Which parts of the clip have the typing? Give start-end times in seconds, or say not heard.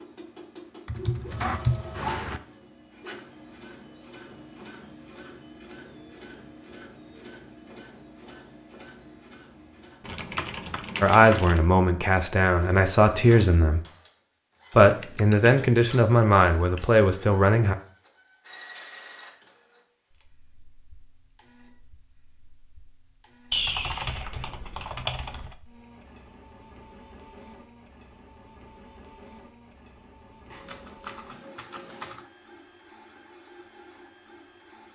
0.8-2.4, 10.0-11.7, 14.9-17.0, 23.5-25.6, 30.5-32.2.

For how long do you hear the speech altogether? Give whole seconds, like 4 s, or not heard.
6 s.